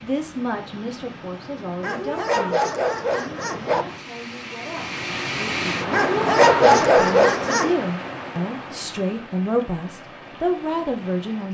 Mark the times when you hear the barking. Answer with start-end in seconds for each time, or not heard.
1.8-3.9, 5.9-7.8.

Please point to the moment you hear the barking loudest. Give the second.
7 s.